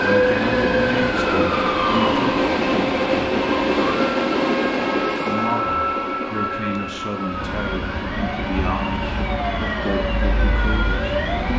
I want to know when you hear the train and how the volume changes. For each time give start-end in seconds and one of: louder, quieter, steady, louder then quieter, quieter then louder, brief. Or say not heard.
0.0-11.5 quieter.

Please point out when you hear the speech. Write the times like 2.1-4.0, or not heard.
0.0-2.3, 5.2-11.5.